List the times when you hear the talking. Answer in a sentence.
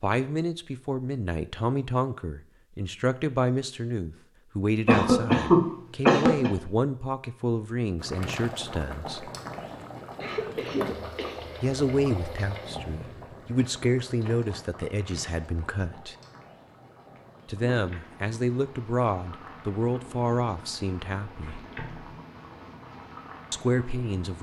The talking can be heard from 0.0 to 9.3 s, from 11.6 to 16.1 s, from 17.4 to 21.6 s and from 23.5 to 24.3 s.